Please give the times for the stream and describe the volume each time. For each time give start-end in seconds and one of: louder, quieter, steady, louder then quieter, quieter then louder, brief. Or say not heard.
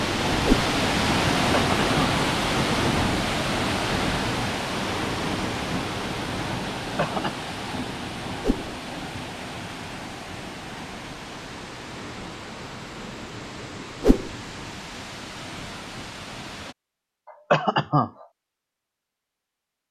0.0-16.8 quieter.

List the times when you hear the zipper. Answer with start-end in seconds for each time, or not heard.
not heard.